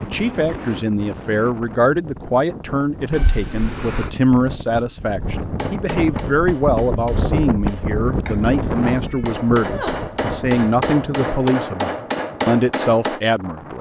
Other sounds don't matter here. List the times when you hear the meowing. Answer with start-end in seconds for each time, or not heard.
3.1-4.1, 8.6-10.1.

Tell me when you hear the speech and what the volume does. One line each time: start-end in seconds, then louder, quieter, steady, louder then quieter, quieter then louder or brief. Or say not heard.
0.0-13.7 steady.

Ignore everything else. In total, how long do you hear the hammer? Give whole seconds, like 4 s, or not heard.
8 s.